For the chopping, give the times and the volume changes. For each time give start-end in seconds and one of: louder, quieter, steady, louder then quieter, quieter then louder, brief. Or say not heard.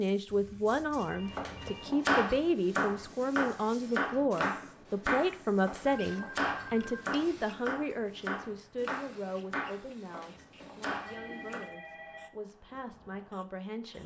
1.2-11.6 quieter.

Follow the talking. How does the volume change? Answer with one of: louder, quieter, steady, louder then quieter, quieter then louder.
quieter.